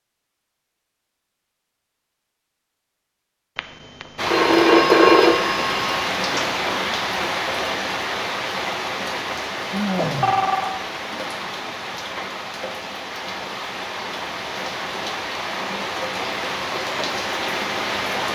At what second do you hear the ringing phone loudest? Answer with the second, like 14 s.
5 s.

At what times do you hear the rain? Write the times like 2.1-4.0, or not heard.
4.2-18.2.